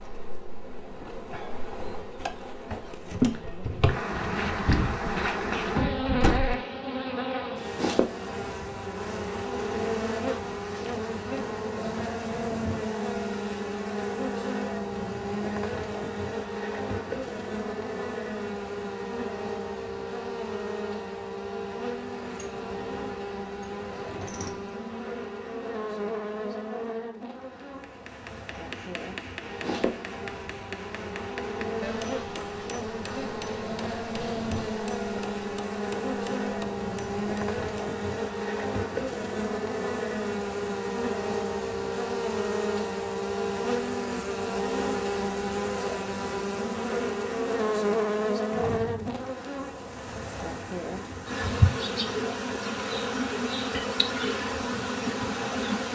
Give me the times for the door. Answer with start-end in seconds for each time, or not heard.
4.1-6.5, 22.1-24.7, 48.5-49.4.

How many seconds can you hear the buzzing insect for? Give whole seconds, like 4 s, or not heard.
56 s.